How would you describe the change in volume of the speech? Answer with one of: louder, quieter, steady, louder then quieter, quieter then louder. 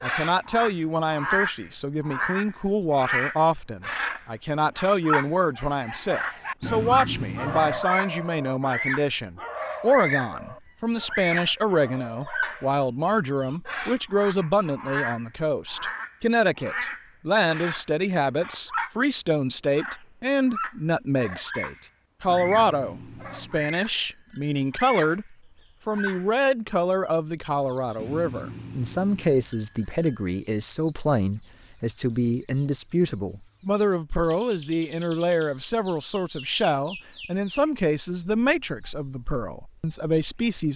steady.